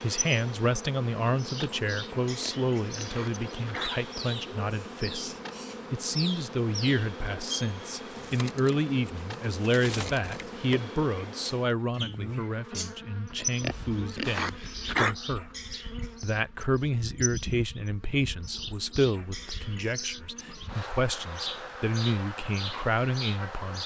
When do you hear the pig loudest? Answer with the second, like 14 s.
15 s.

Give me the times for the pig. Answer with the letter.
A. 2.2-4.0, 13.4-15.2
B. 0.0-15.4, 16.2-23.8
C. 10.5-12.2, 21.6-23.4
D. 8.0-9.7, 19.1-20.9
A.